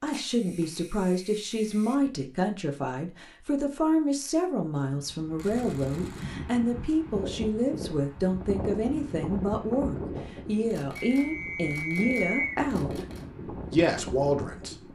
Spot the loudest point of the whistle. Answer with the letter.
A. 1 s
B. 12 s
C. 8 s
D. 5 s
B.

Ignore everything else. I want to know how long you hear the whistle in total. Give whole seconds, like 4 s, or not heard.
2 s.